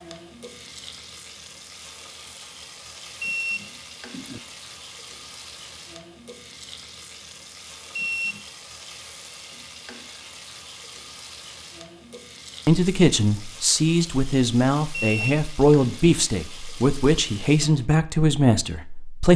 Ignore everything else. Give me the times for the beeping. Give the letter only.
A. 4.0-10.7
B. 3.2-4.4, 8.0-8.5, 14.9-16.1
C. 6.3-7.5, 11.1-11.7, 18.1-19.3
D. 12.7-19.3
B.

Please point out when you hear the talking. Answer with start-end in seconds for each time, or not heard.
12.7-19.3.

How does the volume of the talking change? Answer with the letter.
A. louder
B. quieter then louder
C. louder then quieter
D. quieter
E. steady
E.